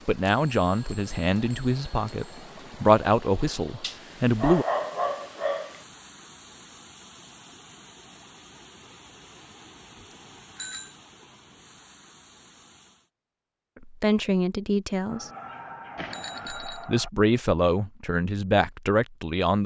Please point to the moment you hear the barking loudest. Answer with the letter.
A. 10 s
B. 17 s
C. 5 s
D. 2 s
C.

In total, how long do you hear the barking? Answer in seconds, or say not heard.
4 s.